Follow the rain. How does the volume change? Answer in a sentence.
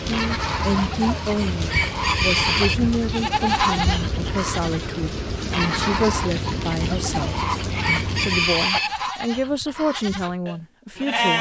The loudness of the rain stays about the same.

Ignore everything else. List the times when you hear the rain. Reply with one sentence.
The rain can be heard from 0.0 to 8.7 s.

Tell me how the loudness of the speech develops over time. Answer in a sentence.
The volume of the speech stays about the same.